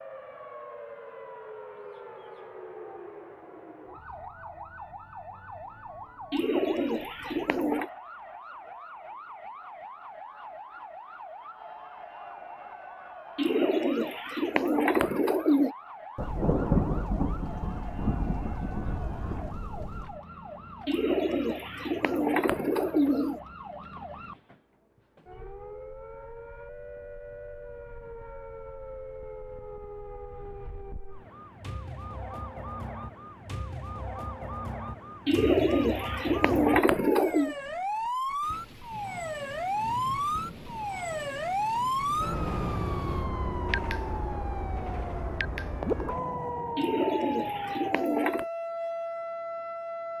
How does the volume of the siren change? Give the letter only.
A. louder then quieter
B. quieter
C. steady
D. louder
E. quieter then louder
D.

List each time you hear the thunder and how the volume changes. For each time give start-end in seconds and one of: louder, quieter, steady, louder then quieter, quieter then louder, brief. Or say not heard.
16.1-20.1 quieter
38.4-43.3 louder.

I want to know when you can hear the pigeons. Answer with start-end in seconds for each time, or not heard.
6.3-7.9, 13.3-15.8, 20.9-23.4, 35.2-37.5, 46.8-48.5.